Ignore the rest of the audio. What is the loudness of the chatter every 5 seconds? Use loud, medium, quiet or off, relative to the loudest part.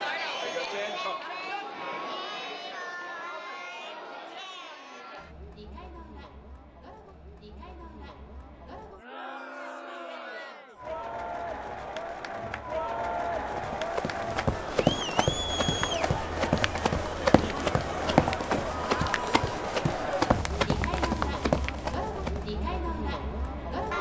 loud, quiet, loud, loud, loud.